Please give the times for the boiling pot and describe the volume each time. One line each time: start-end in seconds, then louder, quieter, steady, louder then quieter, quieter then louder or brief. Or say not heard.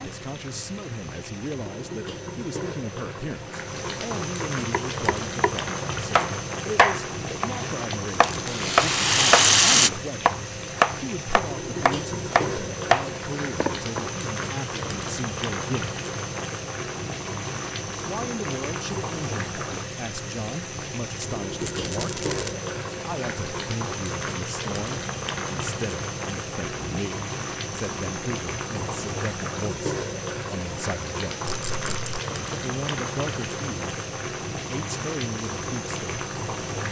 0.0-36.8 steady.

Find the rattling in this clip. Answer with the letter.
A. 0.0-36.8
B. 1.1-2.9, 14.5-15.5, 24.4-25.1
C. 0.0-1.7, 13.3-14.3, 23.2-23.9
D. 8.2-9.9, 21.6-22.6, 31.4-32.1
D.